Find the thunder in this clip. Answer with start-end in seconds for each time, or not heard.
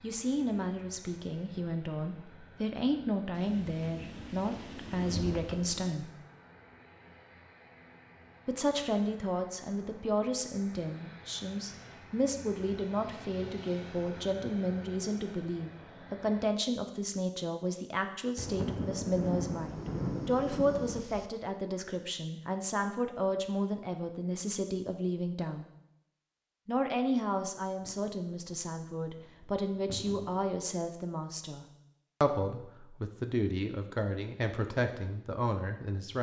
3.4-6.0, 18.4-21.3, 27.8-30.6.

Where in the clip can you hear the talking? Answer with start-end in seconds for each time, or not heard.
0.0-6.1, 8.4-25.6, 26.6-36.1.